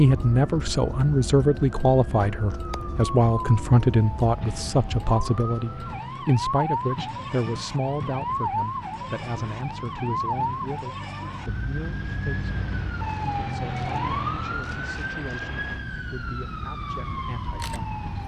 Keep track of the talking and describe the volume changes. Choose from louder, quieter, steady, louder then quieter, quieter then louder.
quieter.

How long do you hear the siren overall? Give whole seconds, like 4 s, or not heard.
18 s.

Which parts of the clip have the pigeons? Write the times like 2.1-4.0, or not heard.
not heard.